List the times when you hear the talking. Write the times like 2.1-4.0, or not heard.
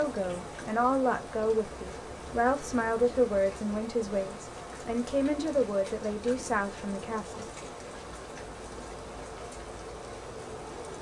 0.0-7.5.